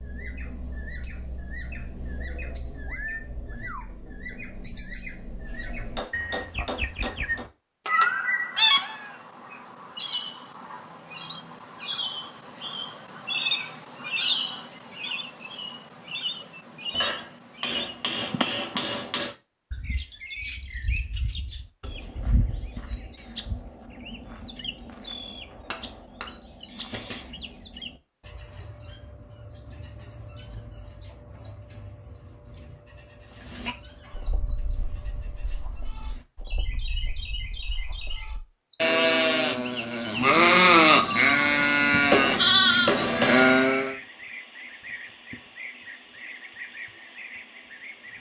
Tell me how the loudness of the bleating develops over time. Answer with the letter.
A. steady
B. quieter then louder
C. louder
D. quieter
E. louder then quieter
C.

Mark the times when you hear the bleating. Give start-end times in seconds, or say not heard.
33.4-44.0.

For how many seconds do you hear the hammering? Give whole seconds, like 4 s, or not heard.
7 s.